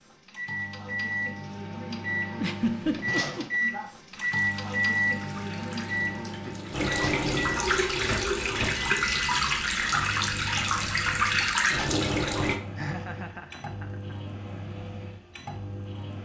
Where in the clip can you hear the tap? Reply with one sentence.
You can hear the tap from 4.1 to 12.6 s.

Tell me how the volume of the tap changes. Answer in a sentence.
The loudness of the tap goes up.